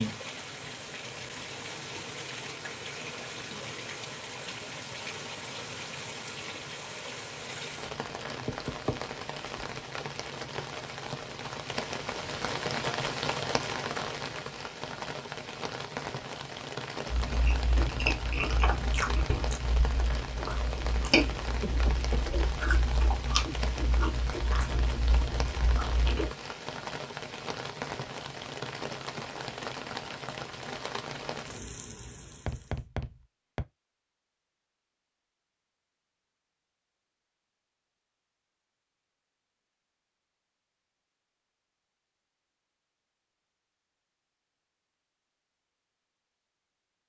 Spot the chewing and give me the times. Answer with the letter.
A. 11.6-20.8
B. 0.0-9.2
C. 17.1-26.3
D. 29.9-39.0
C.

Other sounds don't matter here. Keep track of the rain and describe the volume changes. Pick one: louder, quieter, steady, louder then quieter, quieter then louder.
steady.